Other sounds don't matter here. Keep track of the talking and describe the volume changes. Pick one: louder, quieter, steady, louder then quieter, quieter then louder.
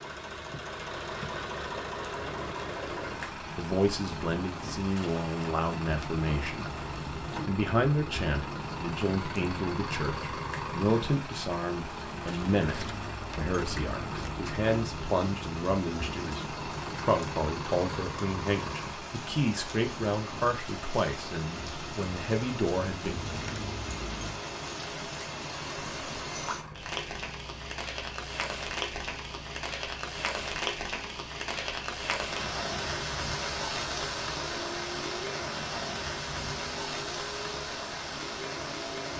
steady.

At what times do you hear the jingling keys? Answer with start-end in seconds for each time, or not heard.
12.6-14.4, 23.1-24.5.